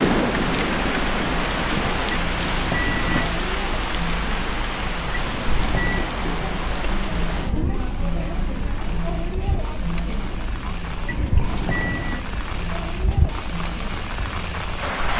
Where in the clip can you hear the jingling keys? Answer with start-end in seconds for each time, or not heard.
2.1-3.3, 5.1-6.1, 11.1-12.2.